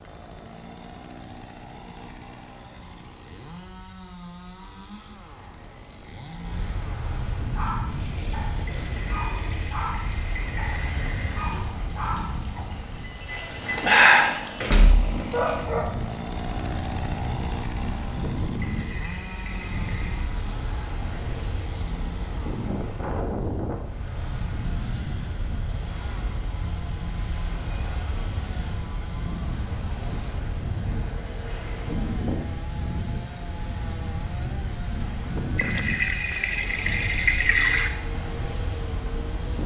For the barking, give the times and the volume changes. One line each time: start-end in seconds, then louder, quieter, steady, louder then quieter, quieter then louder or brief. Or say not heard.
7.5-15.9 louder.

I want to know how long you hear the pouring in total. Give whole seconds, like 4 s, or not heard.
7 s.